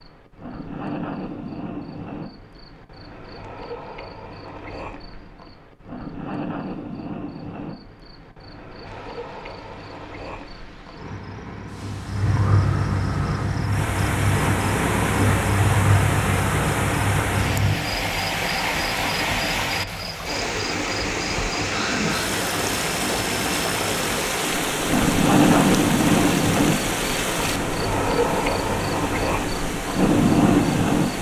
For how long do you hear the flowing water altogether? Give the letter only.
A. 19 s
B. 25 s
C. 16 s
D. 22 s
D.